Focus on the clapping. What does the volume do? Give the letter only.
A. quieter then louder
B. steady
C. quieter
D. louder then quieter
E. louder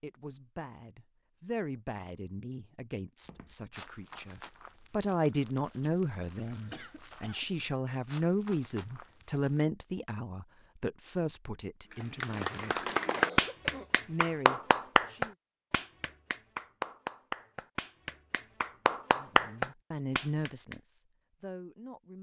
A.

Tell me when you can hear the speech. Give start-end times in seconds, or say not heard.
0.0-12.8, 14.1-15.3, 19.1-22.1.